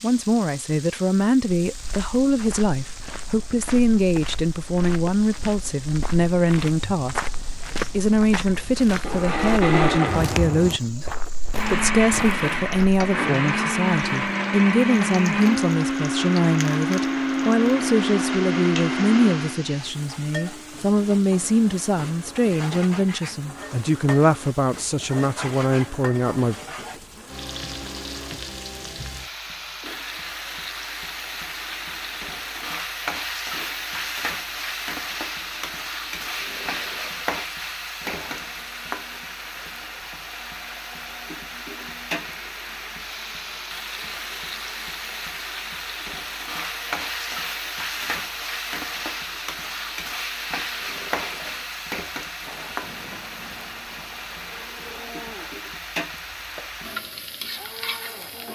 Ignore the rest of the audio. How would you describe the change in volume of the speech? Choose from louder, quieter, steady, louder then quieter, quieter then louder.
steady.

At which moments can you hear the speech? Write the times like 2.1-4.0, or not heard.
0.0-26.6.